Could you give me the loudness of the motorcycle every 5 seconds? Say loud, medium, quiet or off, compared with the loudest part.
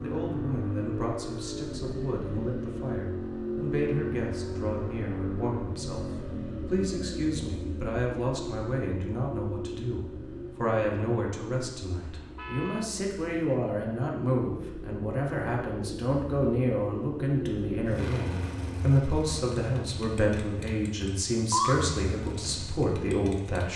loud, loud, medium, loud, loud.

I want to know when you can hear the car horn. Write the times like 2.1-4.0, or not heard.
12.0-12.9.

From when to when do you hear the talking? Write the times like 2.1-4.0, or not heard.
0.0-23.7.